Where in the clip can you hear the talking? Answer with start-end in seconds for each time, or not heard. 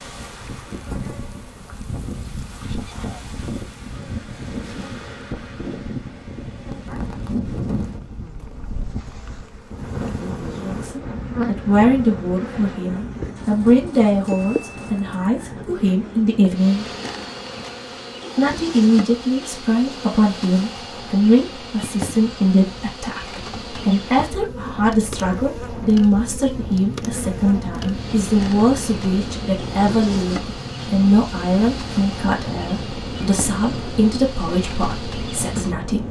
10.6-16.9, 18.4-36.0.